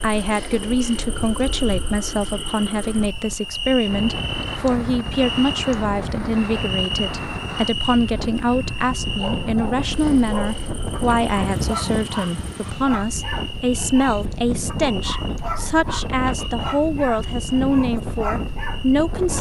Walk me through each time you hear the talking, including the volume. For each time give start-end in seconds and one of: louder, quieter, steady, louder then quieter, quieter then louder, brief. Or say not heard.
0.0-19.3 steady.